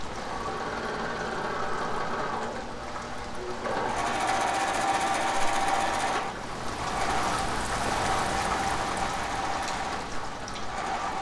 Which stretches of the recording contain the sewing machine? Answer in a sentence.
The sewing machine can be heard from 0.0 to 11.1 s.